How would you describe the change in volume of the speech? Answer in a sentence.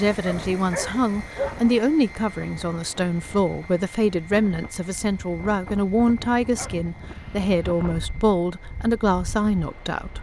The loudness of the speech stays about the same.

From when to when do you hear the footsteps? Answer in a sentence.
You can't hear the footsteps here.